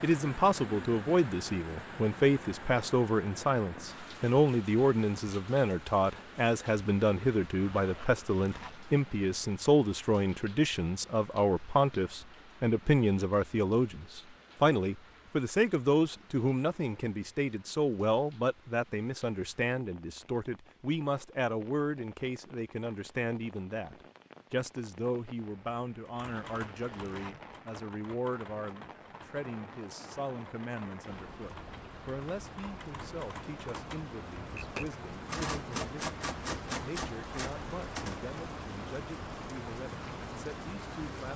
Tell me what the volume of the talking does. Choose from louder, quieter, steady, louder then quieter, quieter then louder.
quieter.